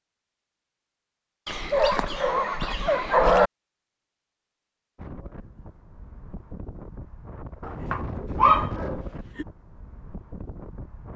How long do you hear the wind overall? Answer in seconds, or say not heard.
6 s.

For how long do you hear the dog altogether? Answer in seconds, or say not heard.
4 s.